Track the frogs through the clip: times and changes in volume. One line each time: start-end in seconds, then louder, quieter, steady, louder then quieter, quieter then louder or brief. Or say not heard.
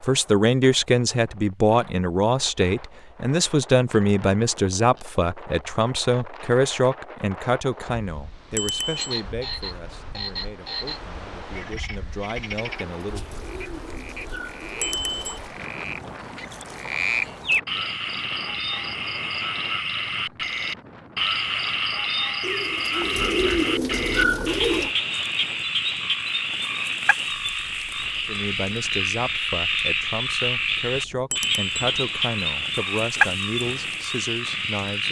8.9-35.0 louder.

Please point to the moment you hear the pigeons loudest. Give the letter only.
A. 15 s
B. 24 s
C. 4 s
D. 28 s
B.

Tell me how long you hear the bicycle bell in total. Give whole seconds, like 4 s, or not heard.
2 s.